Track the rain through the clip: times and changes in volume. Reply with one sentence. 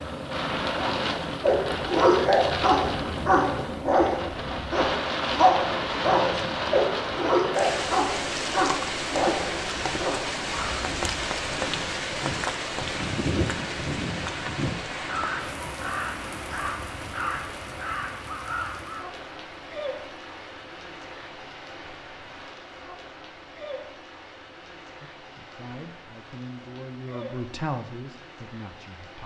You can hear the rain from 0.0 to 29.2 s, getting quieter.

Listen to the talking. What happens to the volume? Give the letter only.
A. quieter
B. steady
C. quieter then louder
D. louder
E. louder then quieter
E.